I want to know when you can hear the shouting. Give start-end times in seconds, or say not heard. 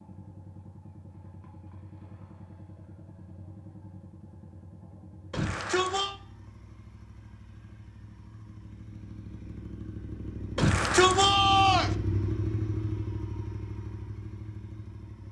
5.3-6.2, 10.6-11.9.